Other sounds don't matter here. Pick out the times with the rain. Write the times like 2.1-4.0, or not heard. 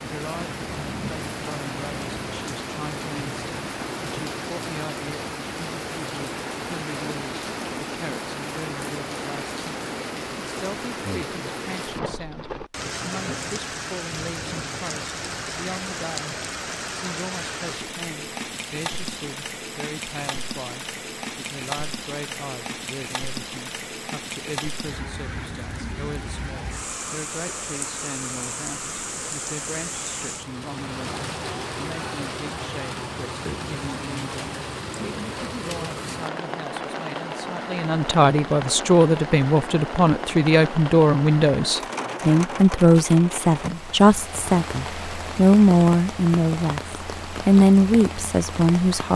0.0-49.1.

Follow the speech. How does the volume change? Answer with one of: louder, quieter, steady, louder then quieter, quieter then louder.
louder.